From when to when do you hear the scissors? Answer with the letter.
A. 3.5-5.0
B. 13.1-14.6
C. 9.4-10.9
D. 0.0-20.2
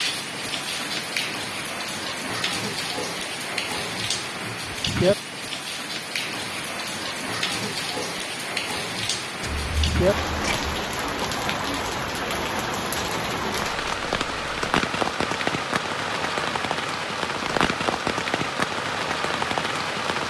C.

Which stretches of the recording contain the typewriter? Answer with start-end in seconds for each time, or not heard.
not heard.